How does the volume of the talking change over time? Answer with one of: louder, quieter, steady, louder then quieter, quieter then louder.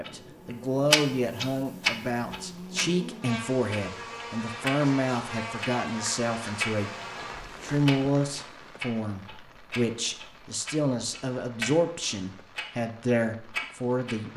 steady.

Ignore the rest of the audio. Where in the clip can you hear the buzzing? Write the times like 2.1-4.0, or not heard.
0.0-7.5.